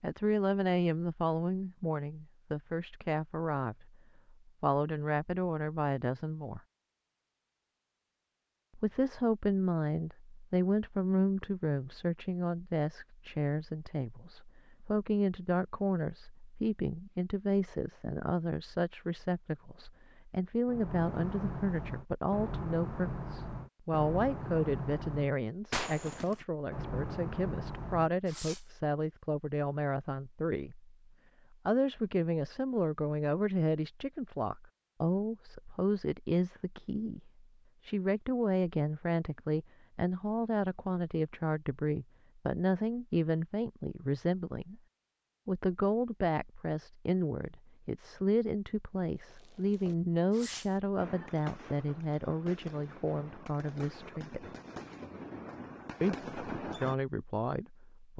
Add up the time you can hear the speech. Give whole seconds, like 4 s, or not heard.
53 s.